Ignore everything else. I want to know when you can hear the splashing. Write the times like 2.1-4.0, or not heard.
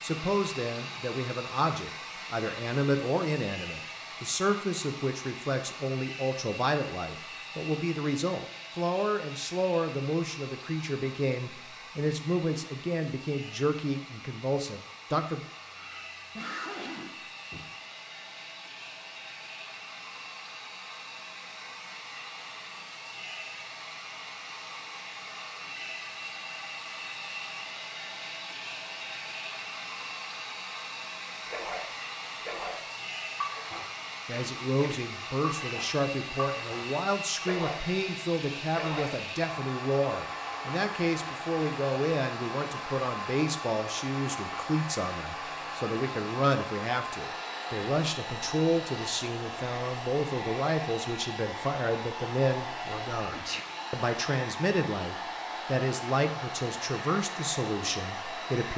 31.4-38.0, 38.7-39.3.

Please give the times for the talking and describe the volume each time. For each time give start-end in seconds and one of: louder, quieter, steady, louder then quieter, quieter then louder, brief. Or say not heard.
0.0-15.4 steady
34.2-58.7 steady.